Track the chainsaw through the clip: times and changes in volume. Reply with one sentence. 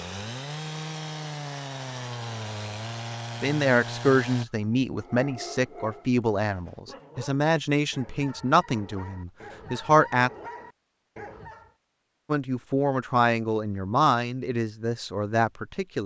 The chainsaw can be heard from 0.0 to 4.5 s, at a steady volume.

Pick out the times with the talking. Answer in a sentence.
The talking can be heard from 3.4 to 10.3 s and from 12.3 to 16.0 s.